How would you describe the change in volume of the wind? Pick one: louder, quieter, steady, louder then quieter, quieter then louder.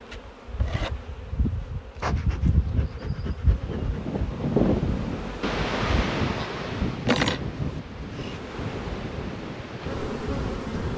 quieter.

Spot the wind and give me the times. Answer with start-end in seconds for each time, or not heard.
3.5-10.9.